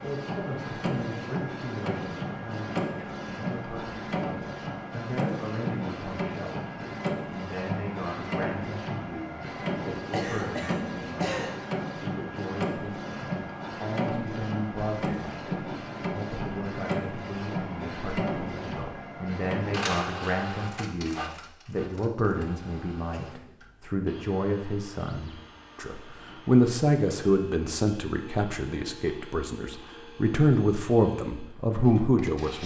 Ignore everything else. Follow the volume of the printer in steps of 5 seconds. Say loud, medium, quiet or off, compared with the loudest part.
loud, loud, loud, loud, medium, quiet, quiet.